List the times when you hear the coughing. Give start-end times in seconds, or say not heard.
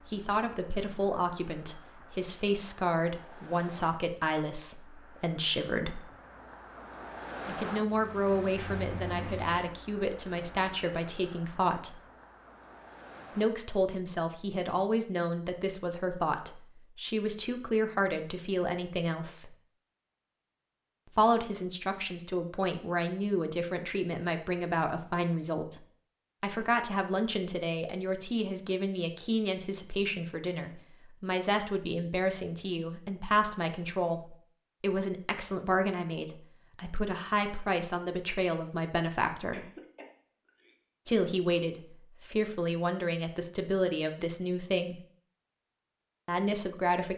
39.5-40.8.